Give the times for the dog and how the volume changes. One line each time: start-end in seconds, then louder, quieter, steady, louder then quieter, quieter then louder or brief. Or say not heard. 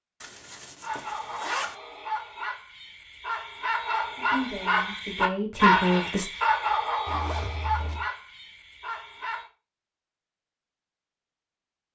0.8-9.5 louder then quieter.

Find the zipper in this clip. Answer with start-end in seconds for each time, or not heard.
0.2-1.8, 7.0-8.1.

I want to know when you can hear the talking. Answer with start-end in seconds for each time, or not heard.
4.2-6.3.